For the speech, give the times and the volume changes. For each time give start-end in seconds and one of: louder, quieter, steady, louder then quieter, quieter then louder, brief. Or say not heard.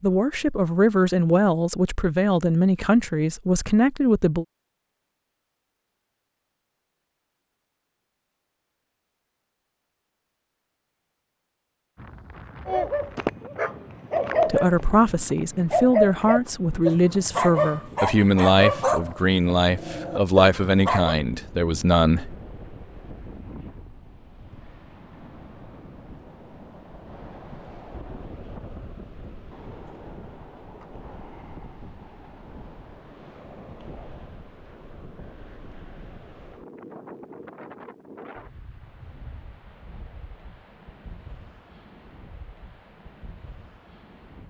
0.0-4.5 steady
14.4-22.4 steady.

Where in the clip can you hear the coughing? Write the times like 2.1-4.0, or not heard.
not heard.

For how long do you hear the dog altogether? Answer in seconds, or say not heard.
8 s.